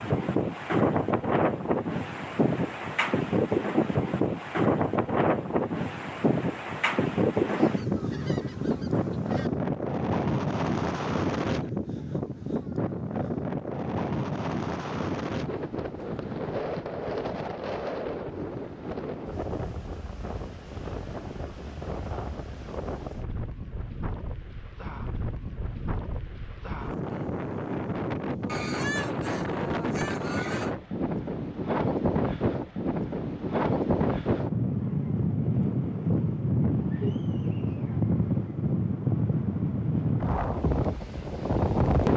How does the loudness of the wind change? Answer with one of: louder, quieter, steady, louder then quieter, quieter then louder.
quieter then louder.